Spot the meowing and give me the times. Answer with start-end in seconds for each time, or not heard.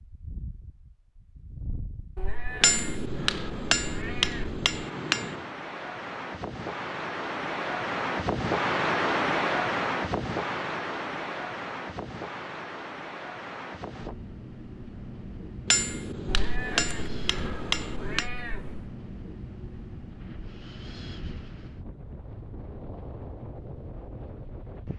2.1-4.5, 16.2-18.9.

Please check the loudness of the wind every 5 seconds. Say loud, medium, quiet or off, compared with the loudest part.
quiet, loud, medium, quiet, quiet.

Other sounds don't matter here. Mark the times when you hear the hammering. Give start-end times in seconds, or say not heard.
2.6-5.5, 15.7-18.2.